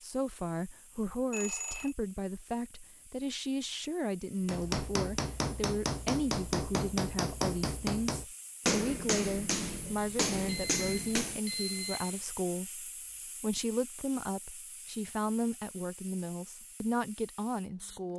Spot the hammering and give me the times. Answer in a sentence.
You can hear the hammering from 4.5 to 11.4 s.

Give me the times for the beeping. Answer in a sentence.
The beeping can be heard from 1.3 to 1.9 s and from 9.8 to 12.2 s.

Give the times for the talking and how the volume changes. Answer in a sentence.
You can hear the talking from 0.0 to 18.1 s, at a steady volume.